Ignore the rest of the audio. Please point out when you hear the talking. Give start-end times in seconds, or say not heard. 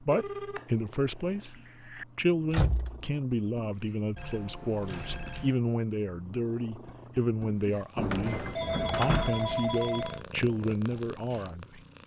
0.0-11.8.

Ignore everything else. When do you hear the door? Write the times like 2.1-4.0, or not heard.
2.5-3.0, 8.0-9.6.